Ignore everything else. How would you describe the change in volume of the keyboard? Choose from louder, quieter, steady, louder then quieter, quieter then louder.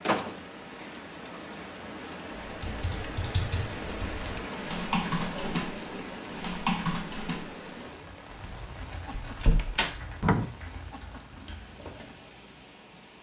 louder then quieter.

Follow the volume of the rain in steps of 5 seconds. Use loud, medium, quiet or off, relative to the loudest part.
loud, loud, medium.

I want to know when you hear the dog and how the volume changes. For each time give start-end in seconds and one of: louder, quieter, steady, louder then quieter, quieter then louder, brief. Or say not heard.
not heard.